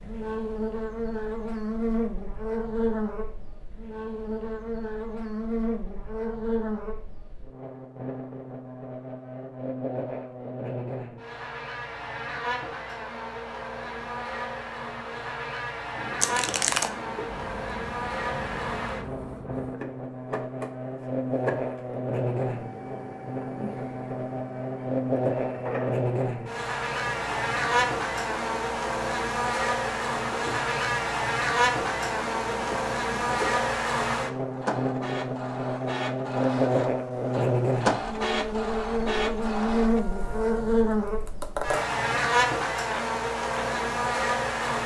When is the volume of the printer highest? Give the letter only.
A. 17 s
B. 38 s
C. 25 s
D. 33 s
B.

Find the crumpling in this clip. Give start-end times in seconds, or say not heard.
16.2-16.9.